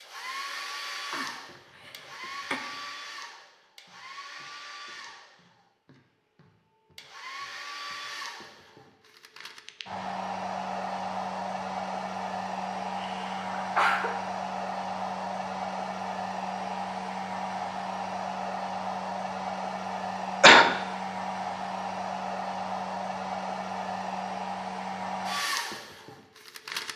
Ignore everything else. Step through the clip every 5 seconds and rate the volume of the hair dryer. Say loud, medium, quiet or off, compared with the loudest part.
medium, medium, loud, loud, loud, loud.